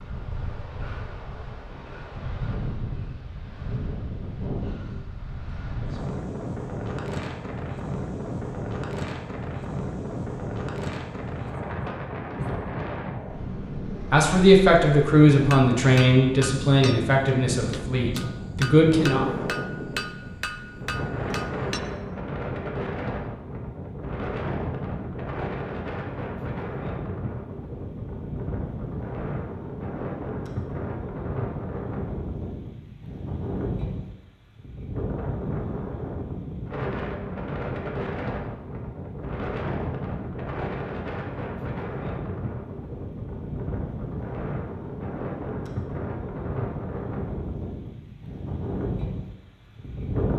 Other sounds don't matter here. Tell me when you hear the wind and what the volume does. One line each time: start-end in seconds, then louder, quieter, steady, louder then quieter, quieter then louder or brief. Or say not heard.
0.0-50.3 steady.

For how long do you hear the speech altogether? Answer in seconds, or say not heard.
5 s.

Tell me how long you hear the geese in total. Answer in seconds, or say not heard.
not heard.